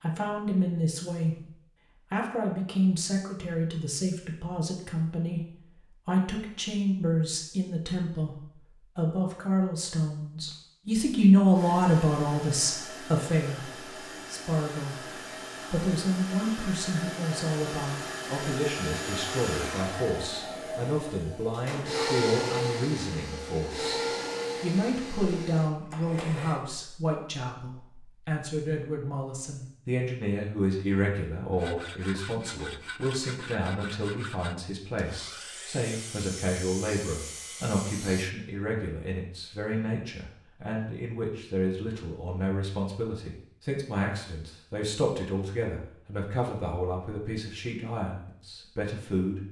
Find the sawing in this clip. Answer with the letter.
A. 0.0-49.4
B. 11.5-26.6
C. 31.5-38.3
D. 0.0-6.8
C.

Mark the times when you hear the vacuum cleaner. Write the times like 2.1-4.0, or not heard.
11.5-26.6.